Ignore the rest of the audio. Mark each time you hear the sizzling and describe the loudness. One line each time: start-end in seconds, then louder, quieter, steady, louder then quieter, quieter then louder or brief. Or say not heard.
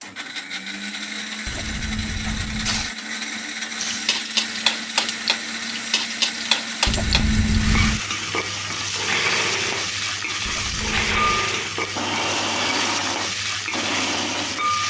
3.8-14.8 steady.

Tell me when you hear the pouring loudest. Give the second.
8 s.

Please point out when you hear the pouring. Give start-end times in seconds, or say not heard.
1.4-2.9, 6.8-8.0, 10.4-11.4.